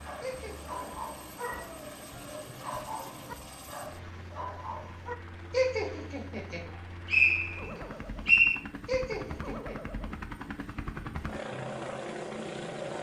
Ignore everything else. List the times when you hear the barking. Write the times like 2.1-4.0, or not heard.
0.1-5.2.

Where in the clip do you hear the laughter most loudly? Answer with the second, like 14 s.
6 s.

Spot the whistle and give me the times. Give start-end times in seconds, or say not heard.
6.7-8.6.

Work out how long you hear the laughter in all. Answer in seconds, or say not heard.
3 s.